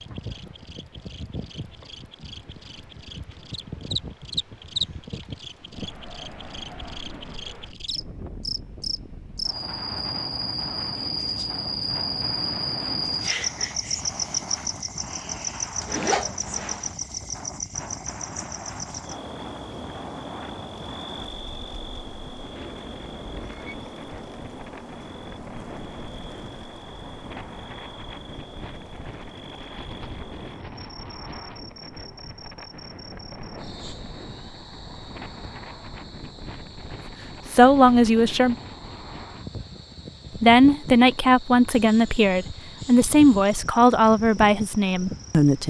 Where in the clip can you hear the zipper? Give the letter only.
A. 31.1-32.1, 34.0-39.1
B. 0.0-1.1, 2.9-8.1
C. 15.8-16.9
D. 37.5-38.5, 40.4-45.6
C.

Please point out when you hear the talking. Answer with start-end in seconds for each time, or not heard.
37.5-38.5, 40.4-45.6.